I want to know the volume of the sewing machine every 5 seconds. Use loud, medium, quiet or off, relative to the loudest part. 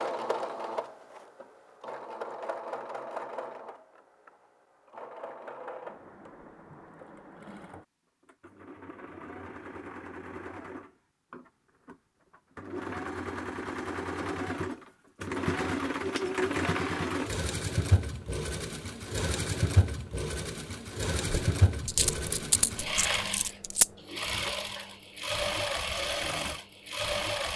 medium, quiet, medium, loud, loud, loud.